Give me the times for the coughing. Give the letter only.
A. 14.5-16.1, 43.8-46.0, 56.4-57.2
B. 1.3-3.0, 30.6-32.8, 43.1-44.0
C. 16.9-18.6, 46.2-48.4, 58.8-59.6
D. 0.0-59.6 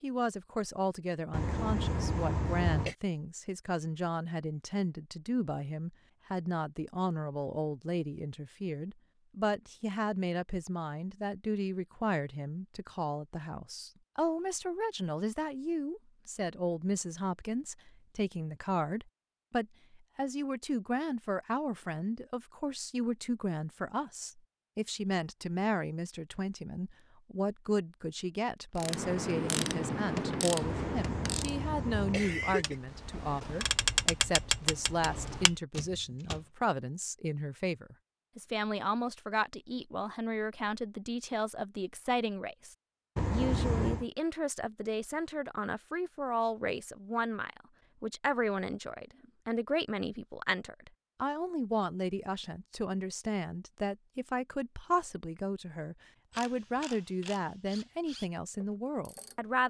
B.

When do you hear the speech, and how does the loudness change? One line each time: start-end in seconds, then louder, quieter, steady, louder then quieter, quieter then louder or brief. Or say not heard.
0.0-59.6 steady.